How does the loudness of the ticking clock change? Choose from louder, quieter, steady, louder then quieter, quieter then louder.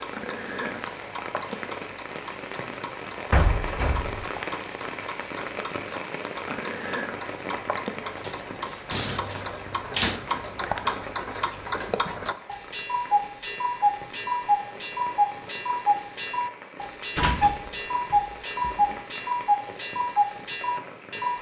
louder.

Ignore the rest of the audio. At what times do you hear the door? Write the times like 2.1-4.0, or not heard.
3.3-4.3, 8.2-10.2, 17.1-18.9.